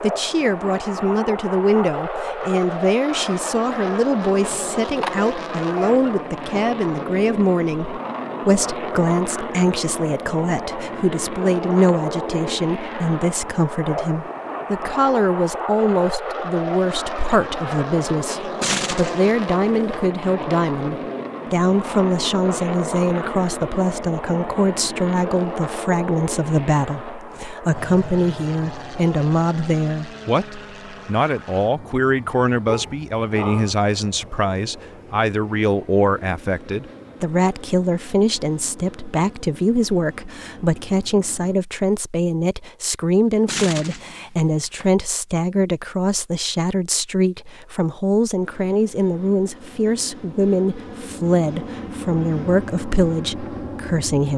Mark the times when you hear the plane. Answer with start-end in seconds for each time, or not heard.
0.0-41.5, 48.4-54.3.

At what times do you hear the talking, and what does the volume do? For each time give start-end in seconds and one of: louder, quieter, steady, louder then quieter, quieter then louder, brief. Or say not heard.
0.0-54.3 steady.